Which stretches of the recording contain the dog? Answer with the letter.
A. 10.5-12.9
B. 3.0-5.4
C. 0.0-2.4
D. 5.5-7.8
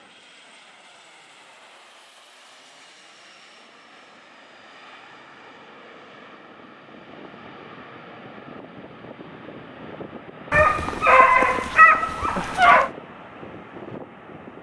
A.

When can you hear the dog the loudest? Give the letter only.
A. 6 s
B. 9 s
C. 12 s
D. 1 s
C.